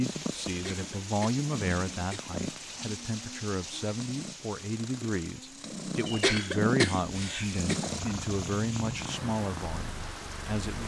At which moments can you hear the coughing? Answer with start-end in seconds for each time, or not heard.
0.5-2.4, 6.0-7.8.